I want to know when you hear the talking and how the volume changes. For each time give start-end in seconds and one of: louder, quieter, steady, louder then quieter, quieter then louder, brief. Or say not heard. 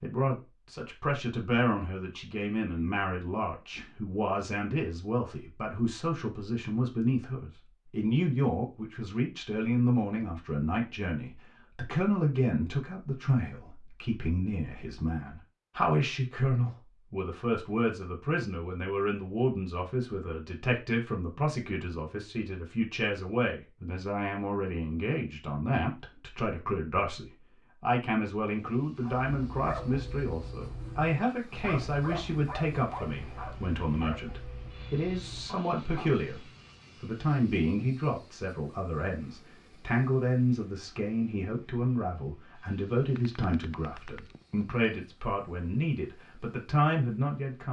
0.0-47.6 steady.